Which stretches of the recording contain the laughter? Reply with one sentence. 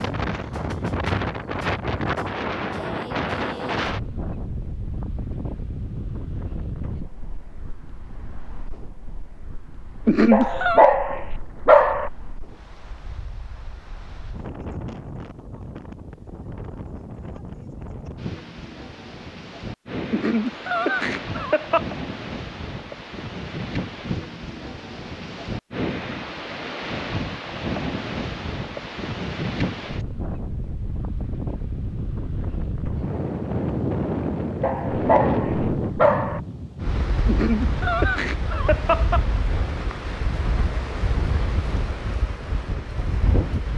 You can hear the laughter from 10.1 to 10.9 s, from 20.1 to 21.8 s and from 37.2 to 39.2 s.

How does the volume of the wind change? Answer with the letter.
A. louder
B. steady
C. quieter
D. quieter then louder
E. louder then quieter
D.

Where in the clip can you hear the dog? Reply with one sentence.
The dog can be heard from 10.3 to 12.1 s and from 34.6 to 36.4 s.